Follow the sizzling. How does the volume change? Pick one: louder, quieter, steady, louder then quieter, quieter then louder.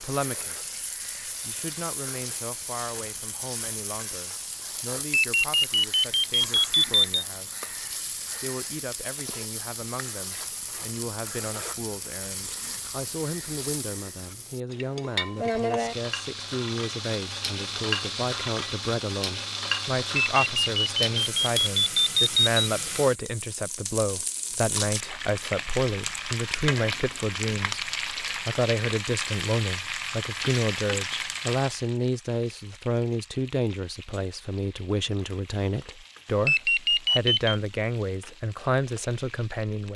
louder then quieter.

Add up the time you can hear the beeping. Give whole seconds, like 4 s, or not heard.
6 s.